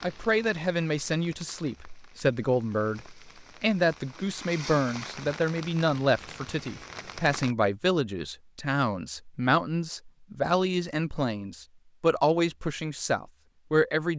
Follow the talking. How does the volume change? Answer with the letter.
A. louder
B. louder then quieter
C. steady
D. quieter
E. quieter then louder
C.